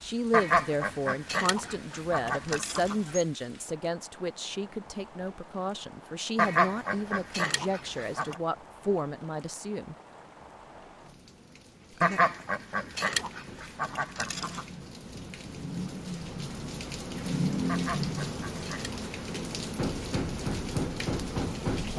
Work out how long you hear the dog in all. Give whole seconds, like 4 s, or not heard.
not heard.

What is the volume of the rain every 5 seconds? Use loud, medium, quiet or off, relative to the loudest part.
quiet, quiet, quiet, loud, loud.